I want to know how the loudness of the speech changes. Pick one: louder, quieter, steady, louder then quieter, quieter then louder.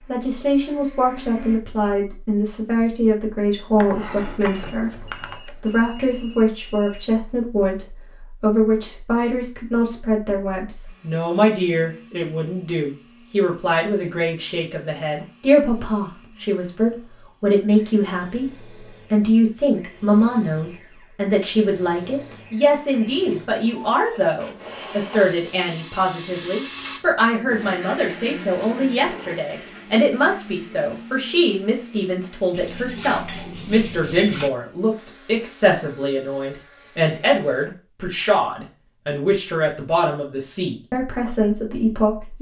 steady.